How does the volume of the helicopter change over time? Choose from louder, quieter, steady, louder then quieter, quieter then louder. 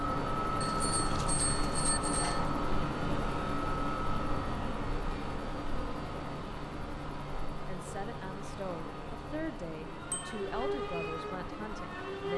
quieter.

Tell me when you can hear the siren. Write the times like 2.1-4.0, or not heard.
9.8-12.3.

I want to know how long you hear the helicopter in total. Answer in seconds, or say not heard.
12 s.